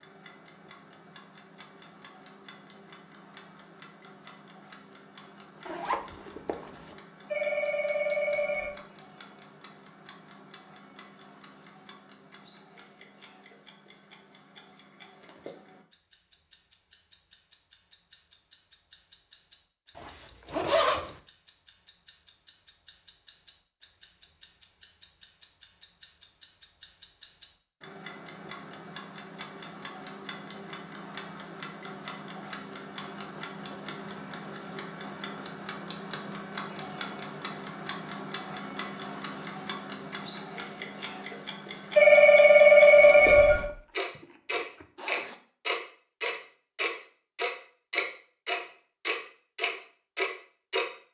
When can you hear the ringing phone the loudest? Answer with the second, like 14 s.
43 s.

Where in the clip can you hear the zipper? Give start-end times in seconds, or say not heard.
5.7-7.0, 19.9-21.1, 43.5-45.4.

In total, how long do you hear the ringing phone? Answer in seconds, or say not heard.
3 s.